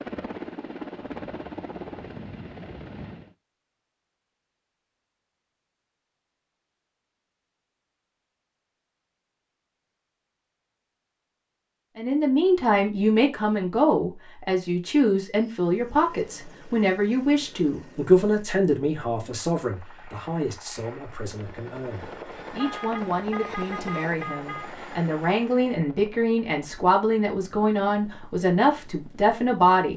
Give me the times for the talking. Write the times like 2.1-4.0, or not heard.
11.9-29.9.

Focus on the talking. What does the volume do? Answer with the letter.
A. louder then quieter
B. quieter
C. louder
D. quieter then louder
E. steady
D.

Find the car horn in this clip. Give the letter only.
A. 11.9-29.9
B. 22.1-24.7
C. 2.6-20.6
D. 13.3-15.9
B.